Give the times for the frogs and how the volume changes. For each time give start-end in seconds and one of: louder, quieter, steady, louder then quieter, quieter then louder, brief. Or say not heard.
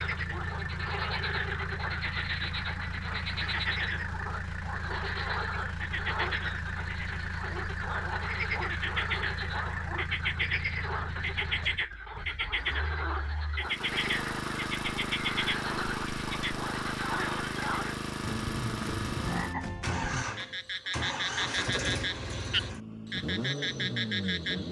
0.0-24.6 steady.